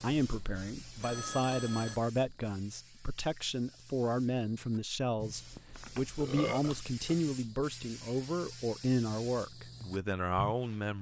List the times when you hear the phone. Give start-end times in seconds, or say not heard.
1.0-2.0, 5.5-6.0.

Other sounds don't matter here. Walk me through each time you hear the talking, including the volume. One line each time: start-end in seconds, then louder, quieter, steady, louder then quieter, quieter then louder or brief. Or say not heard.
0.0-10.9 steady.